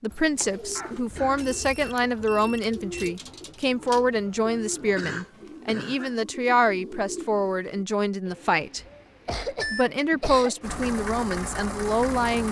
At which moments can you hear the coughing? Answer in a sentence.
The coughing can be heard from 0.8 to 2.0 s, from 5.0 to 6.2 s and from 8.8 to 10.6 s.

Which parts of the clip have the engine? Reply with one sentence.
You can hear the engine from 10.6 to 12.4 s.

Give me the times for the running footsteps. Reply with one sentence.
The running footsteps can't be heard in this clip.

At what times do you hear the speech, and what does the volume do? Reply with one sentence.
You can hear the speech from 0.0 to 8.8 s, at a steady volume; and briefly from 9.7 to 12.4 s.